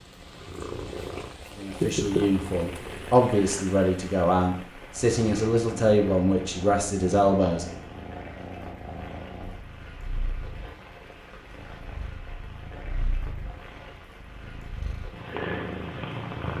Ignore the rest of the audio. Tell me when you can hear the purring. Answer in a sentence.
The purring can be heard from 0.2 to 3.2 s and from 4.8 to 16.5 s.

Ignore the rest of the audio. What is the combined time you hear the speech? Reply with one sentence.
You can hear the speech for 6 seconds altogether.